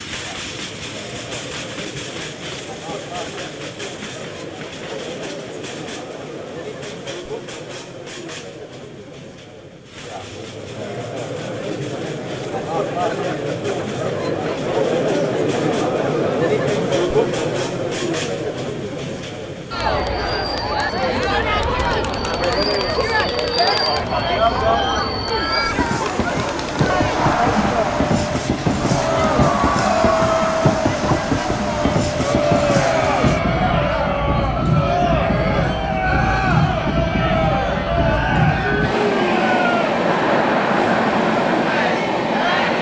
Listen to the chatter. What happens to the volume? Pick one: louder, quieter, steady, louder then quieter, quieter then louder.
louder.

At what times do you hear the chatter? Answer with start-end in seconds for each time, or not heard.
0.1-42.7.